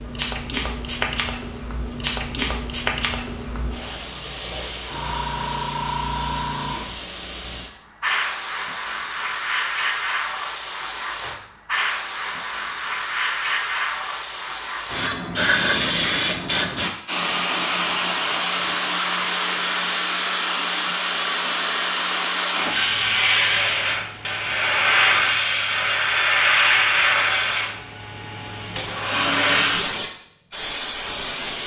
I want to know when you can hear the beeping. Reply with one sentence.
The beeping can be heard from 21.1 to 22.3 s.